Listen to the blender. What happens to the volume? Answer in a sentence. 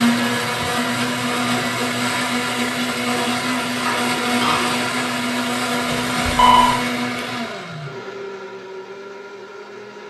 The volume of the blender goes down.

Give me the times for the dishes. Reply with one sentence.
The dishes can be heard from 3.8 to 5.2 s.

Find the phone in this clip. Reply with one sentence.
You can hear the phone from 6.0 to 6.8 s.